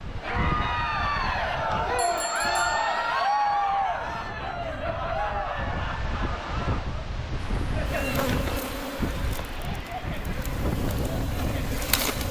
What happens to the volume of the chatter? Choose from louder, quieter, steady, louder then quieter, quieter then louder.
quieter.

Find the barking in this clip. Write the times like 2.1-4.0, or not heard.
not heard.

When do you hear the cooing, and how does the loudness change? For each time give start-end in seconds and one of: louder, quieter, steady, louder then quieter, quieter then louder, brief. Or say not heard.
not heard.